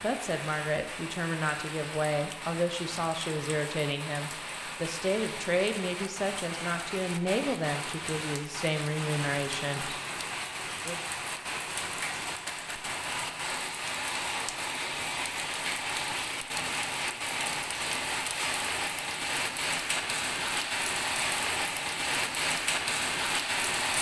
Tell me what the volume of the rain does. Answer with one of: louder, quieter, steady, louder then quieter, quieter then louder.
louder.